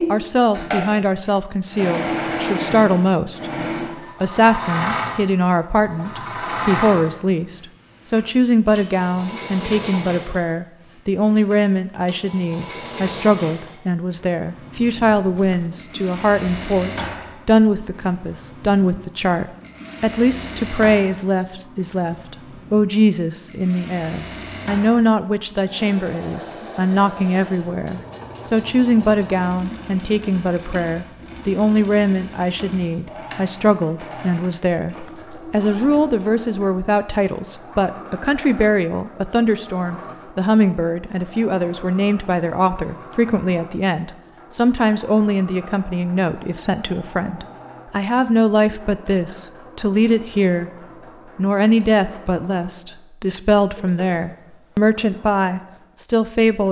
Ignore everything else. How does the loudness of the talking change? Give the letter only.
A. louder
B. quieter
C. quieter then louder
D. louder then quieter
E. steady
E.